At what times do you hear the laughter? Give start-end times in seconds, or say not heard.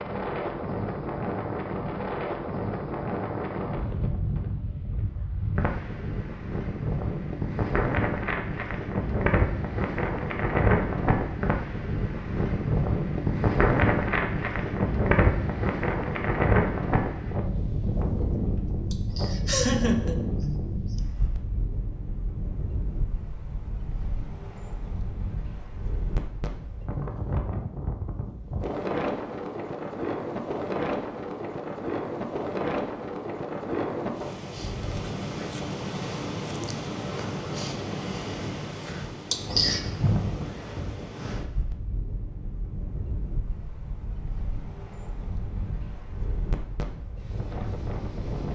18.9-21.0, 39.3-39.8.